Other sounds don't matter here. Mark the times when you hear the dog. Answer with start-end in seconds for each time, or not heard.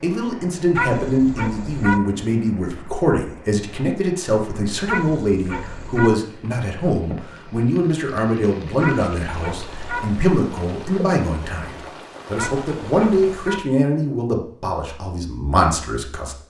0.8-2.0, 4.8-6.1, 8.8-10.1, 12.3-13.6.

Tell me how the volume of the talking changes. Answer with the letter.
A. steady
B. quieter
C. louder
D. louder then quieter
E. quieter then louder
A.